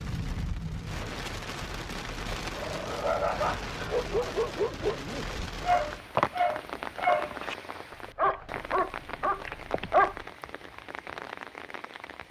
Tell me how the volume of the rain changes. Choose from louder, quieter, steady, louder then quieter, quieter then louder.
steady.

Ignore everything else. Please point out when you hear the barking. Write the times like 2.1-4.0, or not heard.
2.5-10.2.